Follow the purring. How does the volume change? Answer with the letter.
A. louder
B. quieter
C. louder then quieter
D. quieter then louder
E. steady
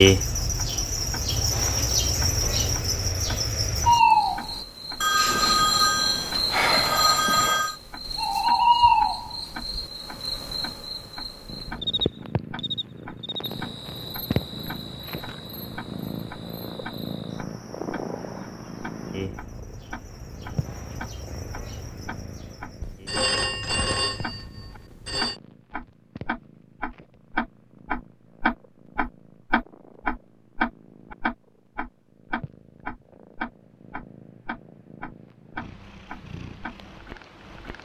D.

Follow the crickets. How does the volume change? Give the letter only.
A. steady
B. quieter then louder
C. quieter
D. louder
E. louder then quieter
C.